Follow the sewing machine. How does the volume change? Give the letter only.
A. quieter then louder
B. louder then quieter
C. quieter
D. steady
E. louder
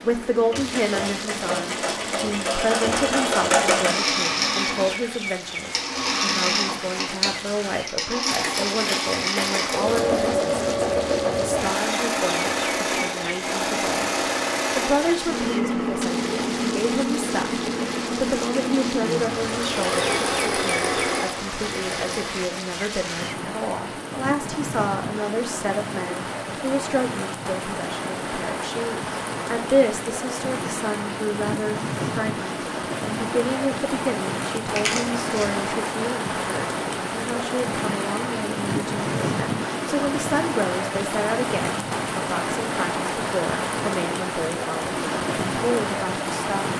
D.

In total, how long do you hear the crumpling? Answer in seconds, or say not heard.
3 s.